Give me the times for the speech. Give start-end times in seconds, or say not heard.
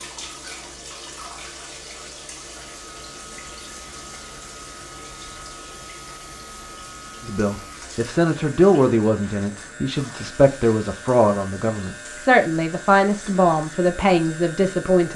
7.2-15.1.